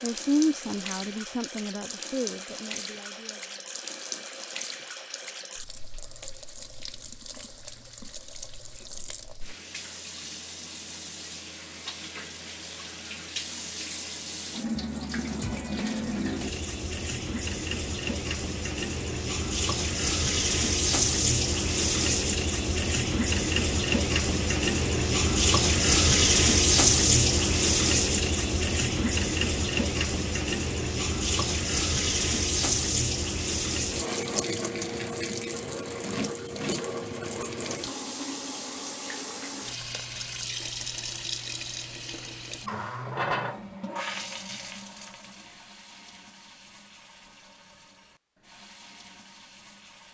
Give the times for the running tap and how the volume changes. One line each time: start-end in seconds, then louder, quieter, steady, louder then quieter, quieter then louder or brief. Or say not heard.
0.0-50.1 louder then quieter.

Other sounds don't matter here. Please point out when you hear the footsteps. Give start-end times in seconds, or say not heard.
not heard.